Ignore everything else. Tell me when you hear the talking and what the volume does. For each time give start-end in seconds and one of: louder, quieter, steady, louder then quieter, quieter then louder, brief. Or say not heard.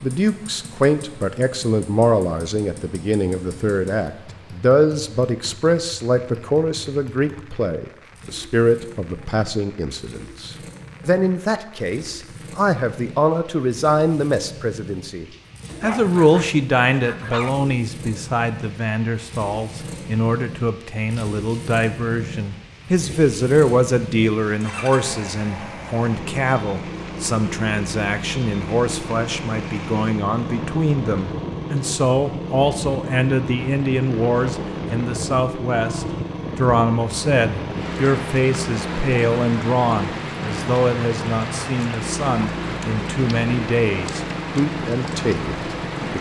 0.0-46.1 steady.